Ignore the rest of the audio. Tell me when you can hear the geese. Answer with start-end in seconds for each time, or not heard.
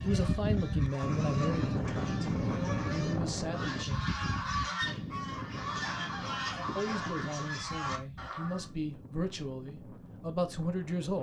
0.0-8.7.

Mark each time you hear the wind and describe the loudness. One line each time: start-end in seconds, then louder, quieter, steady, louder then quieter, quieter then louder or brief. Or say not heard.
0.0-11.1 quieter.